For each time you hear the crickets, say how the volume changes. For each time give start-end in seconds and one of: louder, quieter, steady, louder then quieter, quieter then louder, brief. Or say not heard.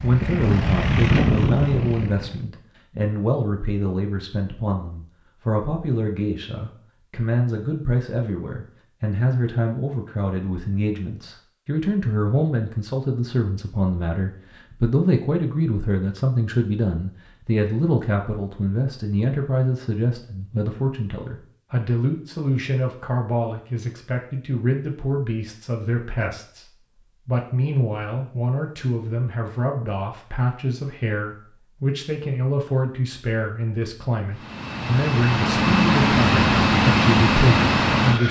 not heard.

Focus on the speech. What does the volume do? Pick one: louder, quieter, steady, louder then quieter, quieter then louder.
steady.